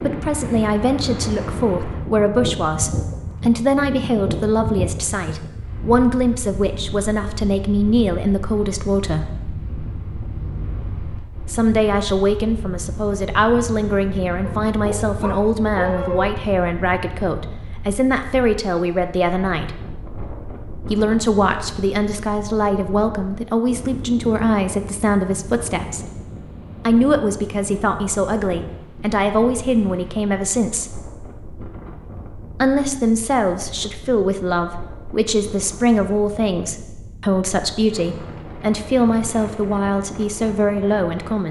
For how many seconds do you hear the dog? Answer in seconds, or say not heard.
2 s.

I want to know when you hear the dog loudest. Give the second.
16 s.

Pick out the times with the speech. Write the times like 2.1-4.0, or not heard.
0.0-9.3, 11.4-19.7, 20.9-26.1, 26.9-30.9, 32.6-41.4.